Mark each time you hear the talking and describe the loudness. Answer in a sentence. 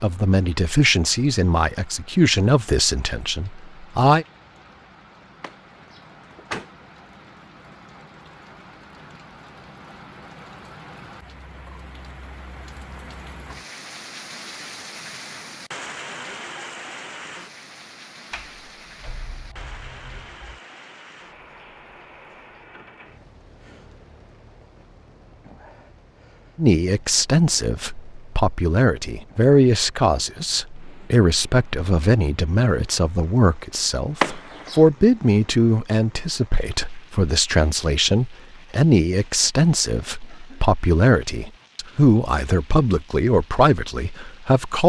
The talking can be heard from 0.0 to 4.2 s, getting quieter; and from 26.6 to 44.8 s, at a steady volume.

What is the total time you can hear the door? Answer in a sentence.
You can hear the door for 4 seconds altogether.